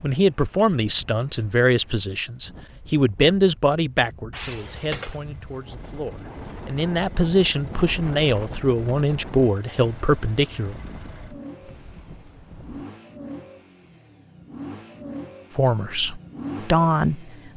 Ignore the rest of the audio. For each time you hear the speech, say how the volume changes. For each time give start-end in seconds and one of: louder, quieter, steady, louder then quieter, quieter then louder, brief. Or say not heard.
0.0-10.8 quieter then louder
15.6-17.5 brief.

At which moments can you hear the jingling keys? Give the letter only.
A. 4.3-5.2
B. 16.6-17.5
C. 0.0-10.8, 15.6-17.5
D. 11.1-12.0
A.